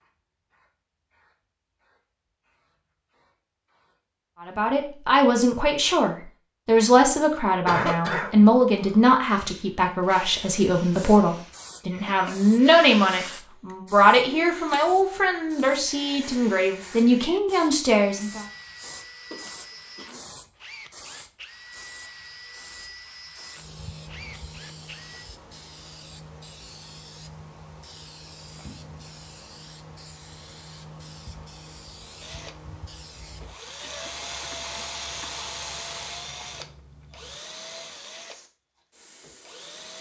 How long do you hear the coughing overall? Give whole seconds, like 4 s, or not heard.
3 s.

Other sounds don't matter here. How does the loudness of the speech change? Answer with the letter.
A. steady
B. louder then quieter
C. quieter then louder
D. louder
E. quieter
A.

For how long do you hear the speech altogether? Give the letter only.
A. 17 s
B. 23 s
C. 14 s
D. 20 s
C.